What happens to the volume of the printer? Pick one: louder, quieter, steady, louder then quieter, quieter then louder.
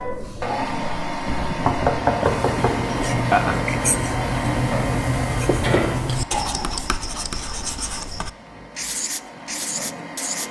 quieter.